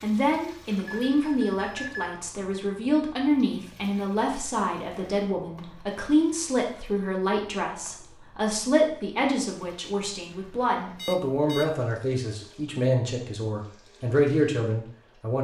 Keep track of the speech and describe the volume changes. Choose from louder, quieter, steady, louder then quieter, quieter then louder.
steady.